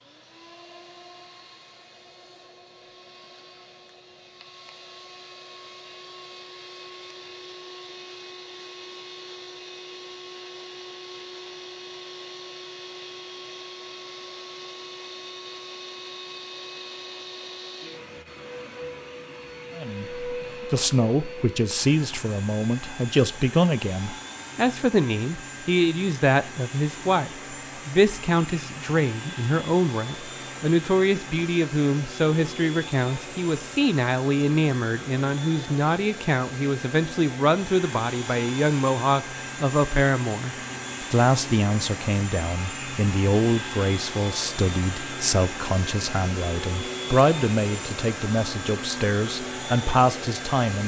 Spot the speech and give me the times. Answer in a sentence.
The speech can be heard from 19.8 to 50.8 s.